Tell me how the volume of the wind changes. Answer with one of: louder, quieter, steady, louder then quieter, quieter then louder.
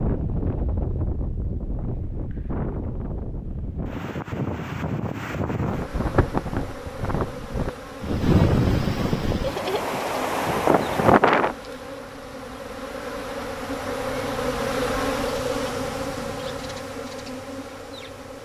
louder.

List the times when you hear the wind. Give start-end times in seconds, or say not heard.
0.0-11.6.